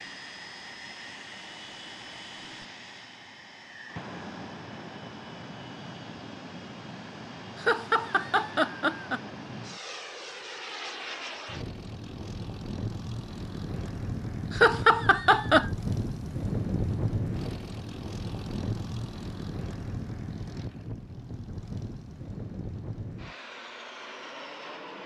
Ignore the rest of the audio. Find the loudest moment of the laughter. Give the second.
15 s.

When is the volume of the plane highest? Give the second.
17 s.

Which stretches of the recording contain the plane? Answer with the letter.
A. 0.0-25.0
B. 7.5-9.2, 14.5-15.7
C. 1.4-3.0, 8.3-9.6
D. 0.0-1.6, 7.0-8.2
A.